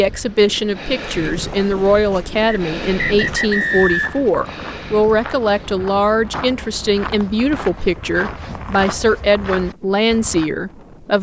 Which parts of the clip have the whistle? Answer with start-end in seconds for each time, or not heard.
2.5-4.3.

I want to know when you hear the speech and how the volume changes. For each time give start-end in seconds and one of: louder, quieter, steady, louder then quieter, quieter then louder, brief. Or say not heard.
0.0-11.1 steady.